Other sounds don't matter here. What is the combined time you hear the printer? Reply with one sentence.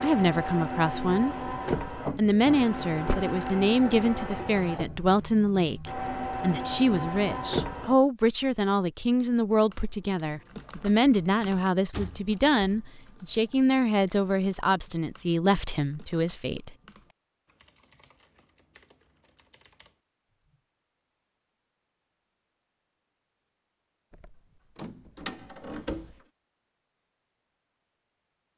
You can hear the printer for 8 seconds altogether.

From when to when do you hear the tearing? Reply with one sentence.
The tearing can't be heard in this clip.